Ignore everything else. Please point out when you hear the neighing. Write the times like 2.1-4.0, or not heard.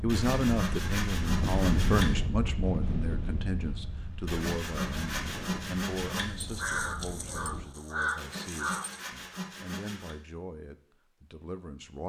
not heard.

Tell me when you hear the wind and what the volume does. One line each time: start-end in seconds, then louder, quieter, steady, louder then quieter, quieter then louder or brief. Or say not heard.
0.0-7.7 quieter.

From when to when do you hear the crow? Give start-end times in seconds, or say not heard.
6.3-9.0.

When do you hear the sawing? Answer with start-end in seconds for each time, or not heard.
0.1-2.1, 4.2-6.2, 8.2-10.2.